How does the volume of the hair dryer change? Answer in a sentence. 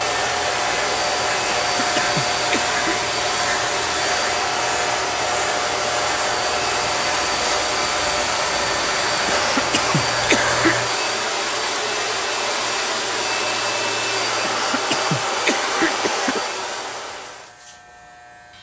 The loudness of the hair dryer stays about the same.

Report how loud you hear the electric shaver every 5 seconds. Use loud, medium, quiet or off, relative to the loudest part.
loud, loud, medium, quiet.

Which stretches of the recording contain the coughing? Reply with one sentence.
You can hear the coughing from 1.5 to 3.0 s, from 9.2 to 10.8 s and from 14.4 to 16.4 s.